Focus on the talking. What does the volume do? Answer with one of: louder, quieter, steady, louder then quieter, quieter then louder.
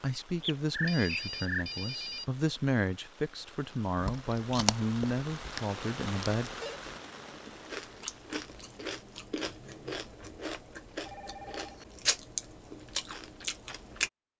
steady.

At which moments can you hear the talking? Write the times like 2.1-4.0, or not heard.
0.0-6.5.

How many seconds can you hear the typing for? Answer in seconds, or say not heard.
not heard.